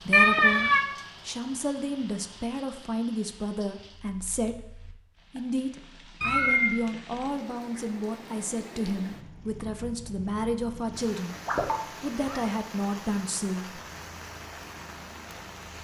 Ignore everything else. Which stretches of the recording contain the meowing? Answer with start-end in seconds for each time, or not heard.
0.1-0.8, 6.2-6.8, 11.3-12.4.